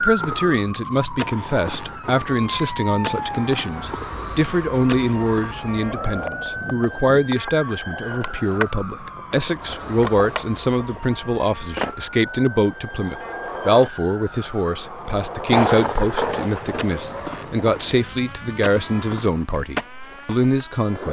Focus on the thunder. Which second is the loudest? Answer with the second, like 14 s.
16 s.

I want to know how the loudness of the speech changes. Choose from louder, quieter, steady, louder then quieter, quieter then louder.
steady.